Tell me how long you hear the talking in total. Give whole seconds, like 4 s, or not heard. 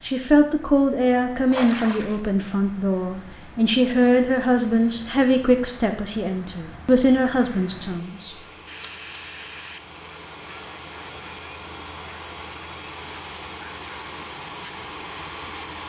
8 s.